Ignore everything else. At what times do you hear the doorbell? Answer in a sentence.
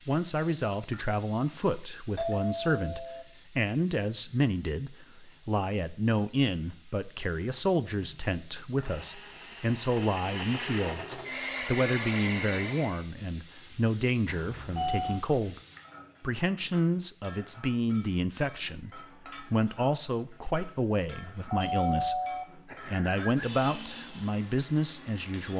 You can hear the doorbell from 2.1 to 3.2 s, from 14.2 to 15.2 s and from 21.5 to 23.4 s.